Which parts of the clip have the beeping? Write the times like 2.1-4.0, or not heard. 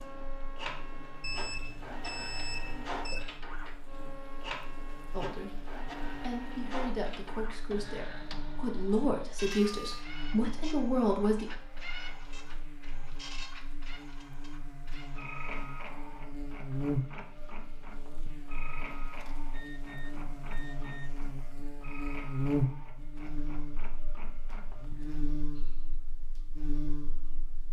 1.2-3.2, 9.4-10.1, 19.1-21.2.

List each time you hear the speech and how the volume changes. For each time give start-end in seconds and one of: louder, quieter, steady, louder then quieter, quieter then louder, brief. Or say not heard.
5.1-11.5 louder.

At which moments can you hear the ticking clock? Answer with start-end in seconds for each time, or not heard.
not heard.